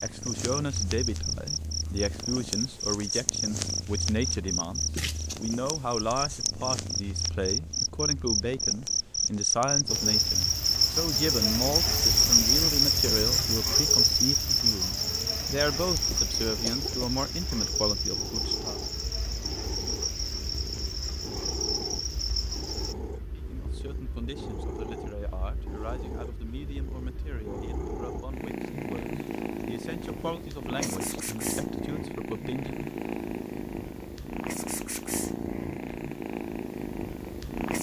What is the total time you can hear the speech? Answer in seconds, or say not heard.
28 s.